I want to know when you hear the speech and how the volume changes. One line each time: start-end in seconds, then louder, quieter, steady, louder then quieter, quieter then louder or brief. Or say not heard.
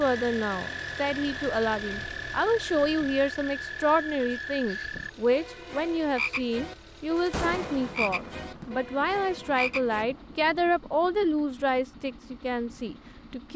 0.0-13.5 steady.